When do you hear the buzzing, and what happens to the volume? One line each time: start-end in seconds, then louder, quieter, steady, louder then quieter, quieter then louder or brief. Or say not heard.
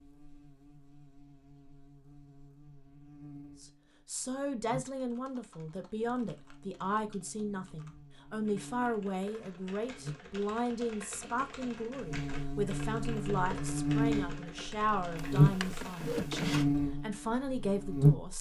0.0-18.3 louder.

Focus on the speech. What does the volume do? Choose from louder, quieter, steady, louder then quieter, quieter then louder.
steady.